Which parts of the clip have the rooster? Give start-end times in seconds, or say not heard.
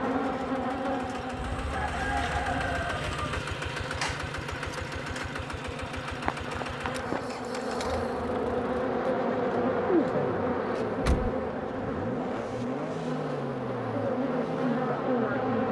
1.4-3.4.